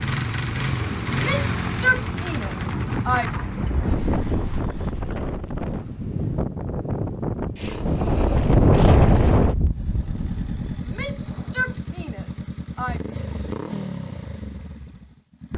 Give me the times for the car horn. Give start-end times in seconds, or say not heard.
not heard.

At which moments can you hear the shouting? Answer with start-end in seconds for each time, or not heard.
1.1-3.3, 10.8-13.0.